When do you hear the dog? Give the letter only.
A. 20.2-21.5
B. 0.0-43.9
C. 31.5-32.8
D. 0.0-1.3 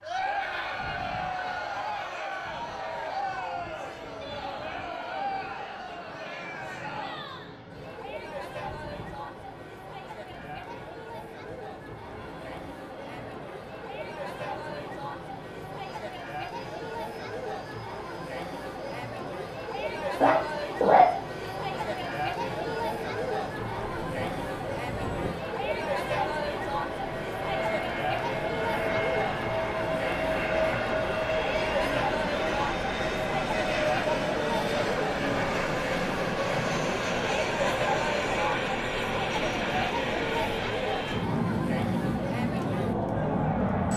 A.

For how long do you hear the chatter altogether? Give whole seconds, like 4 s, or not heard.
44 s.